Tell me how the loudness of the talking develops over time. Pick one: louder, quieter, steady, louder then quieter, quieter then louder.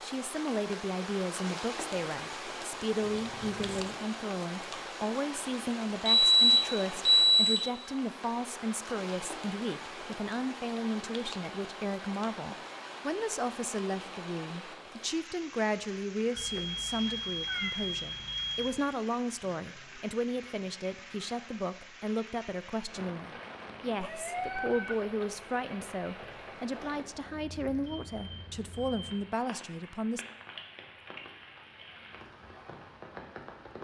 steady.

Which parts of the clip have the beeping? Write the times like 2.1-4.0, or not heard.
6.0-7.7, 16.4-18.7, 26.8-29.0.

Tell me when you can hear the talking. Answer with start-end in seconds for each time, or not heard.
0.0-30.2.